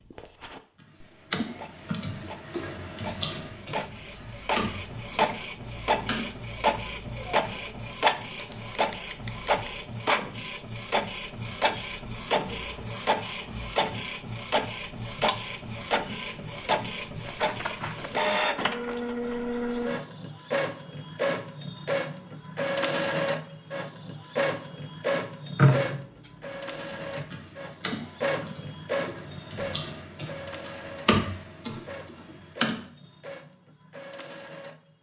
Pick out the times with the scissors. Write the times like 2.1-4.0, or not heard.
8.3-9.7, 17.2-18.1, 25.6-27.1.